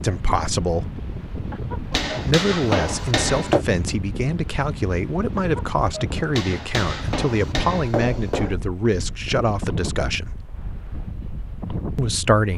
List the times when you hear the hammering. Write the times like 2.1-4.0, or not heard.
1.9-3.6, 6.3-8.6.